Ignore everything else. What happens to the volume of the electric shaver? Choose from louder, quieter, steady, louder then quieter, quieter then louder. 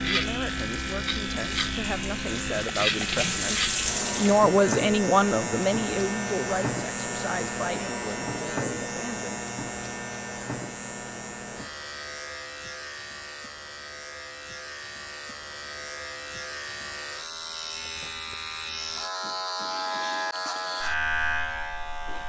quieter then louder.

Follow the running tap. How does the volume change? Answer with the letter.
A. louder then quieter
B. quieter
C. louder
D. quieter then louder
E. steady
C.